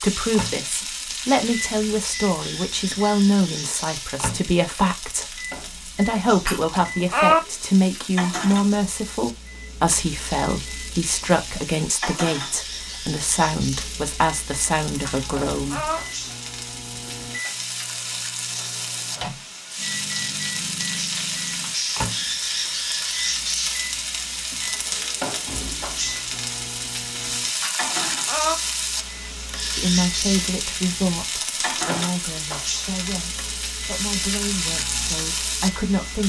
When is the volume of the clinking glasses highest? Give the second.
7 s.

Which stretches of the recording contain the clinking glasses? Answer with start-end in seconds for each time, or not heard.
6.3-7.4, 14.9-16.0, 27.4-28.6.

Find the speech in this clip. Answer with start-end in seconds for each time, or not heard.
0.0-15.9, 29.7-36.2.